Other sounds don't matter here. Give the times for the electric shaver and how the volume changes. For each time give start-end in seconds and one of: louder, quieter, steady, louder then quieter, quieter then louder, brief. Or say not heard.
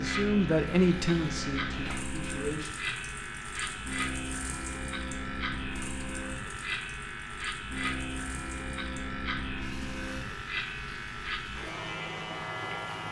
0.0-13.0 steady.